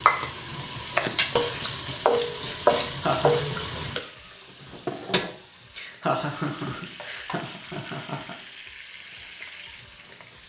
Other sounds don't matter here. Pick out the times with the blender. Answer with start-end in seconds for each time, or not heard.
not heard.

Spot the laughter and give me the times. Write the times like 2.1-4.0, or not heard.
2.8-3.4, 5.8-8.3.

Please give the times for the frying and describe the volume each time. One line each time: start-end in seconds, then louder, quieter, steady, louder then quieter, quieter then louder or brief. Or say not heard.
0.0-10.4 quieter.